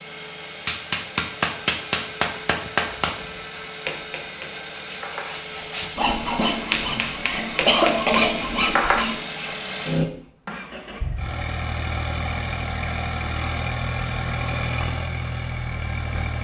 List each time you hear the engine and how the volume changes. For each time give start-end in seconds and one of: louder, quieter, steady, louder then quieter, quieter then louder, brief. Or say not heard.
0.0-16.3 louder.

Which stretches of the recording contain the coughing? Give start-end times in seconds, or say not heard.
6.9-8.2.